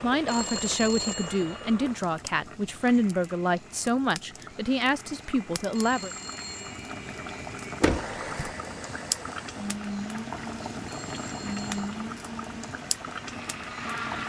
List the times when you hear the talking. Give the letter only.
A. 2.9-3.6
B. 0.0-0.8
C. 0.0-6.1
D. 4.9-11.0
C.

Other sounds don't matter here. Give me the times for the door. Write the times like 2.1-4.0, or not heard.
7.8-8.6.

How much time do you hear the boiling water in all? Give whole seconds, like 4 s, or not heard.
14 s.